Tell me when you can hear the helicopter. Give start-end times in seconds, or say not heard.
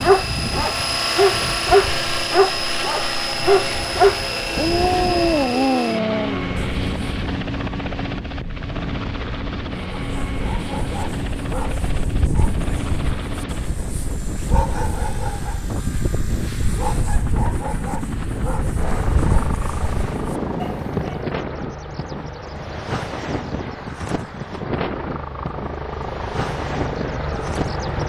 0.0-28.0.